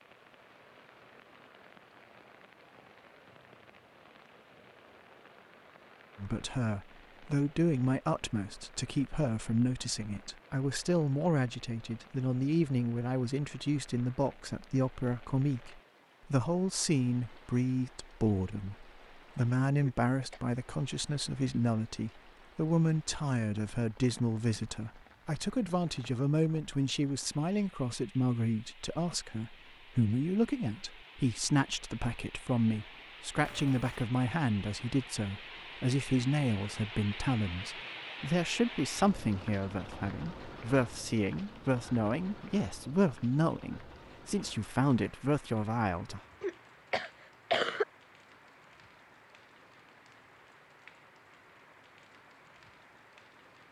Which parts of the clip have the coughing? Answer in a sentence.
You can hear the coughing from 19.8 to 20.4 s and from 46.4 to 47.9 s.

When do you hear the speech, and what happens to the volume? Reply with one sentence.
You can hear the speech from 6.2 to 46.2 s, at a steady volume.